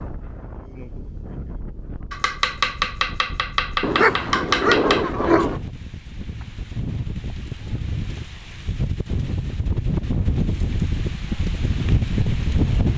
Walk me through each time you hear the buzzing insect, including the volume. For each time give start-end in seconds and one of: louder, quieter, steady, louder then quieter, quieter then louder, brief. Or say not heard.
not heard.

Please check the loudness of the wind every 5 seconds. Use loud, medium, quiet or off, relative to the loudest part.
quiet, medium, loud.